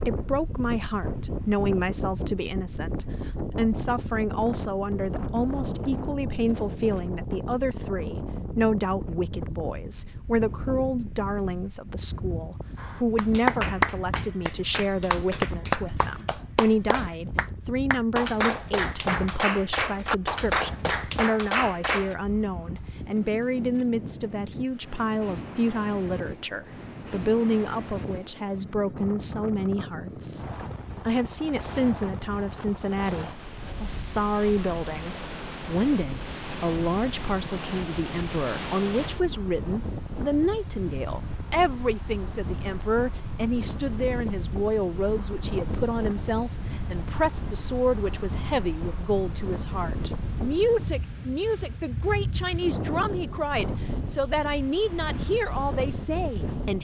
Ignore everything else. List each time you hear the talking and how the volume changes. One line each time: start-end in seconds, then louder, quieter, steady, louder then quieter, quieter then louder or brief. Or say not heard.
0.0-56.7 steady.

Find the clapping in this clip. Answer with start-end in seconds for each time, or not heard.
12.8-22.1.